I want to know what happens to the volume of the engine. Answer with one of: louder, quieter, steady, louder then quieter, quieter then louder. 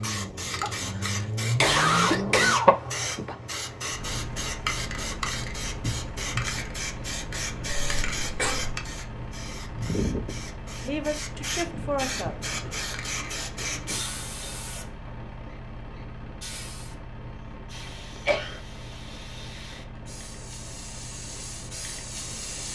quieter.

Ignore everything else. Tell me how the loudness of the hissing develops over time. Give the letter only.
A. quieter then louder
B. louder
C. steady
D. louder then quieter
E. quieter
E.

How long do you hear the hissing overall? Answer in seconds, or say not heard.
23 s.